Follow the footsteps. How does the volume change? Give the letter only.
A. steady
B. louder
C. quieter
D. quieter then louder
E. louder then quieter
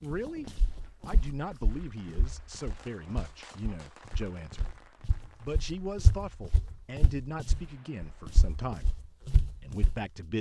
B.